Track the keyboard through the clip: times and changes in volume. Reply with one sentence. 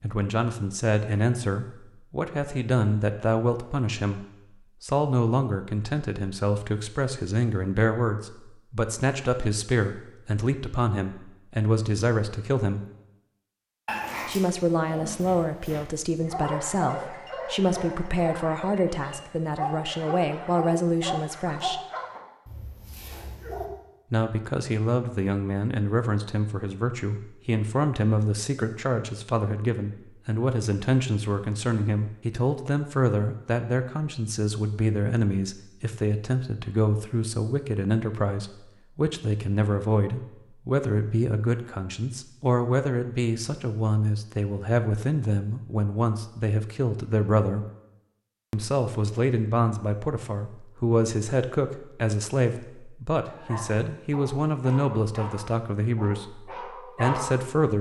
The keyboard can't be heard in this clip.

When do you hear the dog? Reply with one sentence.
You can hear the dog from 13.8 to 23.7 s and from 53.3 to 57.7 s.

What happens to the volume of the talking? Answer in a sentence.
The loudness of the talking stays about the same.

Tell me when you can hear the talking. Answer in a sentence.
You can hear the talking from 0.0 to 12.8 s, from 14.2 to 21.8 s, from 24.1 to 47.6 s and from 48.5 to 57.7 s.